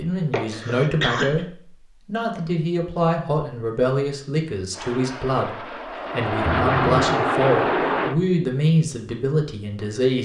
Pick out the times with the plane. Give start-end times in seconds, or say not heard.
4.7-8.2.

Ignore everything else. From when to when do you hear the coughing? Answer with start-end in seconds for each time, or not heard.
0.3-1.4, 6.5-7.2.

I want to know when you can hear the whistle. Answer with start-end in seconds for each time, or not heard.
not heard.